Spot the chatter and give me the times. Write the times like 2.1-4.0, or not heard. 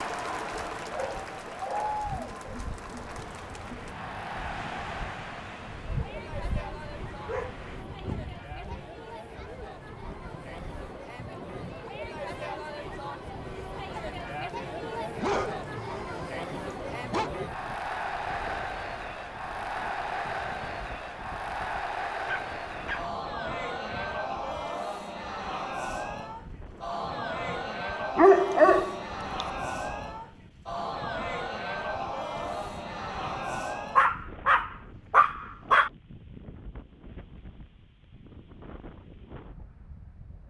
0.0-34.1.